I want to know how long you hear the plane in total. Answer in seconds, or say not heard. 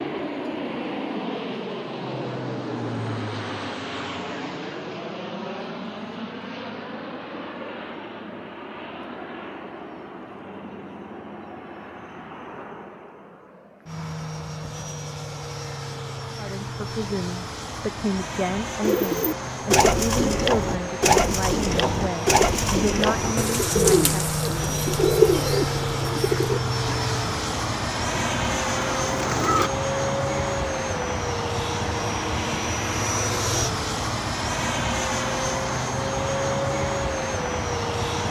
38 s.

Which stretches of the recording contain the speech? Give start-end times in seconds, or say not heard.
16.4-24.1.